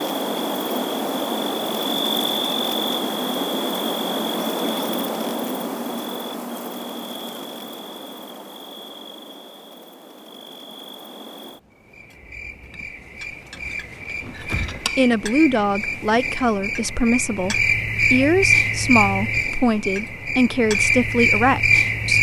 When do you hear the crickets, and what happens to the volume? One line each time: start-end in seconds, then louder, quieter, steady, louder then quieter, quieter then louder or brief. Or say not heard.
0.0-22.1 quieter then louder.